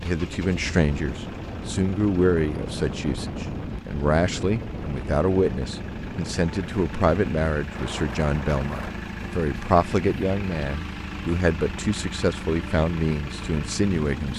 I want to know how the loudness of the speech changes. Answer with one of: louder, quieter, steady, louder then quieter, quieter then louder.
steady.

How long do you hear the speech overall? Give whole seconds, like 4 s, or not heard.
14 s.